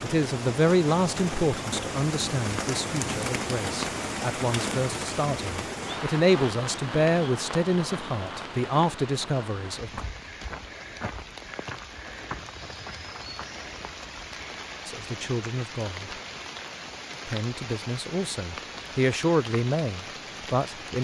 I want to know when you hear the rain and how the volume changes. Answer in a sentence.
The rain can be heard from 0.0 to 20.9 s, getting quieter.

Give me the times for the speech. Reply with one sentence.
You can hear the speech from 0.0 to 10.0 s, from 14.8 to 16.1 s and from 17.2 to 20.9 s.